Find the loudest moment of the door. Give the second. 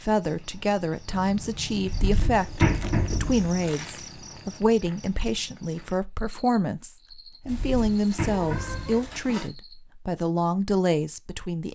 3 s.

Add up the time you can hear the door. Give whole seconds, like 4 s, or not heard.
3 s.